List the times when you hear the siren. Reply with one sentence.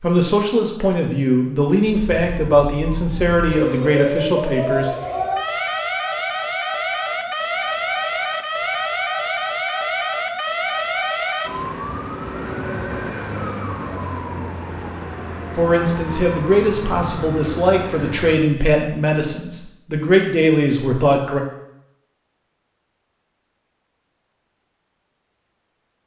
The siren can be heard from 2.1 to 18.6 s.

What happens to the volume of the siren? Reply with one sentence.
The volume of the siren goes down.